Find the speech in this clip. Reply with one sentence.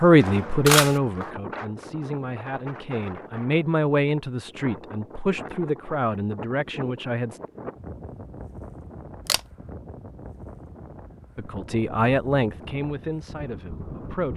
The speech can be heard from 0.0 to 7.4 s and from 11.3 to 14.3 s.